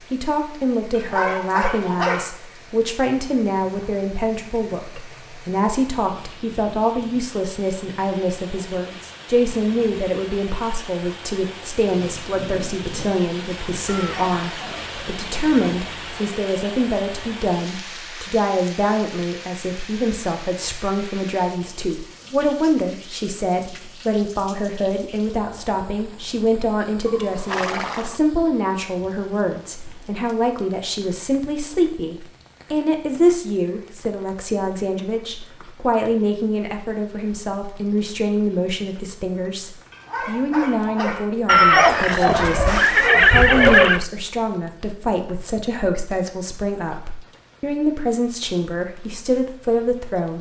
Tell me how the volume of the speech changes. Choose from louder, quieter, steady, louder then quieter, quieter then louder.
steady.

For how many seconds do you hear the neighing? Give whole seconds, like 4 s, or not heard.
5 s.